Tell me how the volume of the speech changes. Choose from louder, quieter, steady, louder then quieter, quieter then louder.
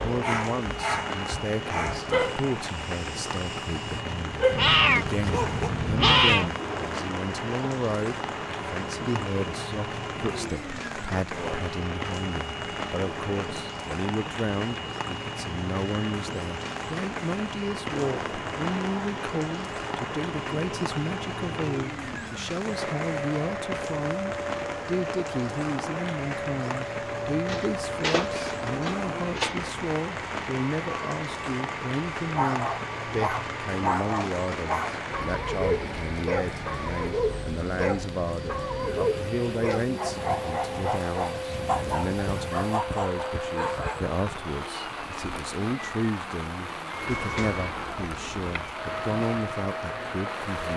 steady.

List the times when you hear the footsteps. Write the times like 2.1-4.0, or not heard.
not heard.